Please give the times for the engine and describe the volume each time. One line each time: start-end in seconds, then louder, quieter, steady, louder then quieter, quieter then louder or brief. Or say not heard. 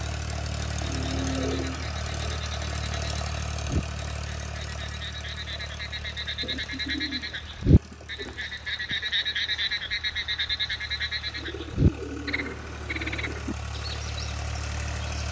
0.0-15.2 quieter then louder.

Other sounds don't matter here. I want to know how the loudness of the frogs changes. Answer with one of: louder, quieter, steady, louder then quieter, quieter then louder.
louder then quieter.